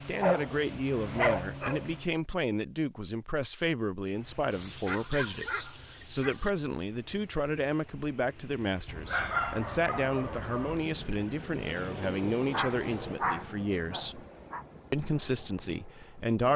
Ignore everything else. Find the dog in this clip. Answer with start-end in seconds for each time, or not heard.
0.2-1.9, 4.5-6.5, 8.8-10.8, 12.5-14.7.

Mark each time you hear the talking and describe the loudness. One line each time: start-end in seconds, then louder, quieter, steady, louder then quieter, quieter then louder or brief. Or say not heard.
0.1-14.2 steady
14.9-16.5 brief.